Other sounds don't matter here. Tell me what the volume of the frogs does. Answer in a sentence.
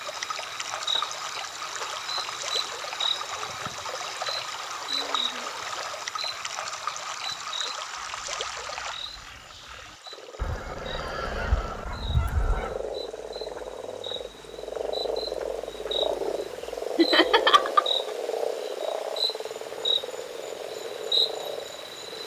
The volume of the frogs goes up.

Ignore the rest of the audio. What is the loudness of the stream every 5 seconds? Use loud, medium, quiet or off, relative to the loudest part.
loud, loud, quiet, quiet, quiet.